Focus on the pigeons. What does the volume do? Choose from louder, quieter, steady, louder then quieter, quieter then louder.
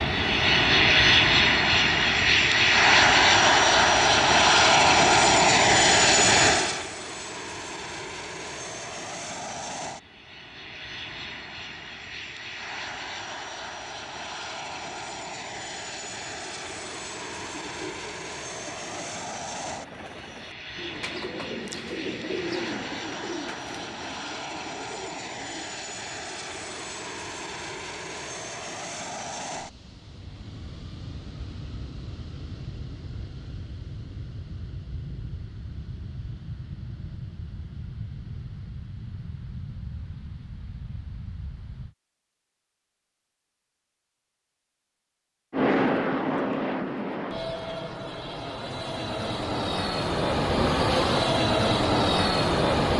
louder then quieter.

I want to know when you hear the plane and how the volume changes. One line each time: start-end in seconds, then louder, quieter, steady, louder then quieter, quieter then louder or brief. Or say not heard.
0.0-42.0 quieter
45.5-52.9 quieter then louder.